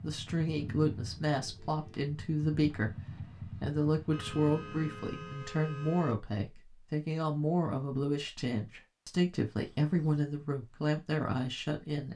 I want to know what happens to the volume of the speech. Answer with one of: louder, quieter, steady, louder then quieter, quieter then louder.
steady.